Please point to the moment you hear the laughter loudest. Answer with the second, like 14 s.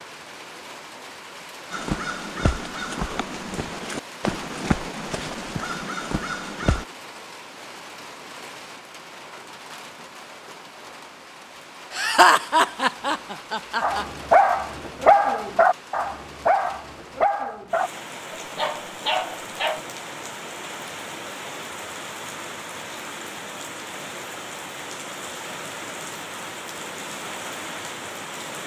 12 s.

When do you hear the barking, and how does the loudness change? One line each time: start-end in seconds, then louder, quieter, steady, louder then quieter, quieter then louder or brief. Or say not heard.
13.8-19.8 quieter.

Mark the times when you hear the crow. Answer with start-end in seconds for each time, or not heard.
1.7-6.8.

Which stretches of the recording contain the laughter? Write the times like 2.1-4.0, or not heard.
11.9-14.1.